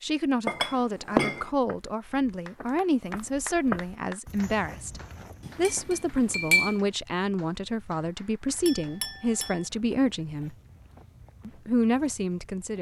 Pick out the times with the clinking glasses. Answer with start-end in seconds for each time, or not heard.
0.5-1.4, 5.5-6.8, 8.7-9.6.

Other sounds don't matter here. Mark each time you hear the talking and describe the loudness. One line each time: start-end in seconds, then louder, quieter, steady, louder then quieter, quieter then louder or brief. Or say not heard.
0.0-10.6 steady
11.4-12.7 brief.